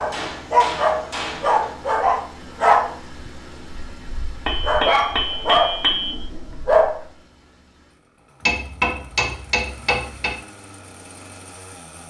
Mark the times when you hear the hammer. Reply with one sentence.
You can hear the hammer from 0.1 to 1.6 s, from 4.5 to 6.2 s and from 8.4 to 10.3 s.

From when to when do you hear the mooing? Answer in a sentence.
You can't hear the mooing here.